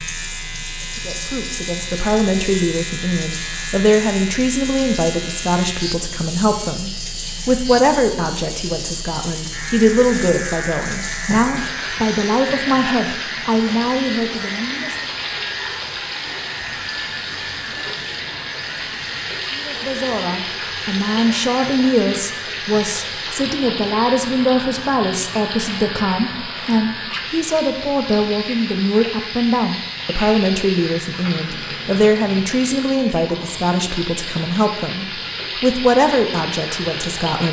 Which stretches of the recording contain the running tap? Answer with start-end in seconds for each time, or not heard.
0.0-37.4.